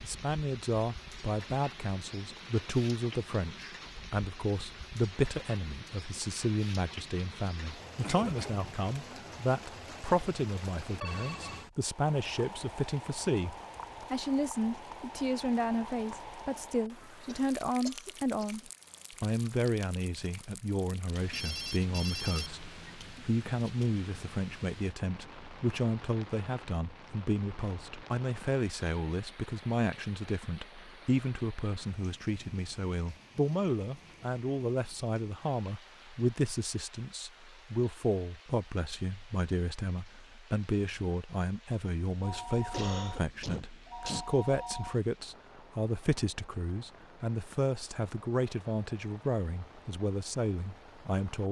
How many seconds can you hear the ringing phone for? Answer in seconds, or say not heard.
5 s.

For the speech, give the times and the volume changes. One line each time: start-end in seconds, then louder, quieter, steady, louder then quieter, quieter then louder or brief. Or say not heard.
0.0-18.6 steady
19.2-51.4 steady.